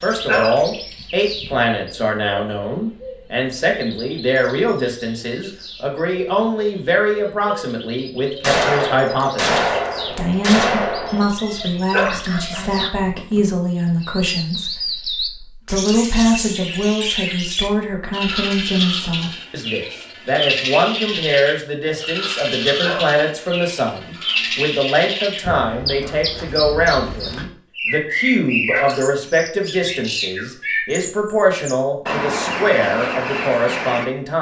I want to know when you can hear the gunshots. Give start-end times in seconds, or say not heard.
8.4-11.3.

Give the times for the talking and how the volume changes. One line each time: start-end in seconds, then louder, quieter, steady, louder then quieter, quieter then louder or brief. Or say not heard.
0.0-34.3 steady.